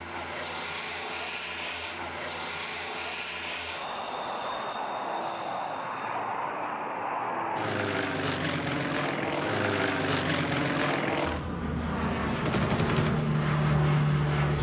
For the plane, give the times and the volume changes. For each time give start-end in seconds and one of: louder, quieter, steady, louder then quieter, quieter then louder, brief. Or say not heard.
0.0-14.5 louder.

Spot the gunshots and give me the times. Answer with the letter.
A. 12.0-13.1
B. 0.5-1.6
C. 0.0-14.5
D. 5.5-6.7
A.